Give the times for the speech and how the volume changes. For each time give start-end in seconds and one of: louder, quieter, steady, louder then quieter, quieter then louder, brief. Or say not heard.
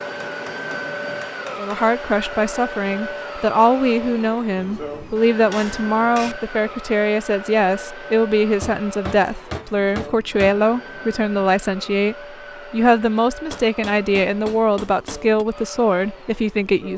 1.6-16.9 steady.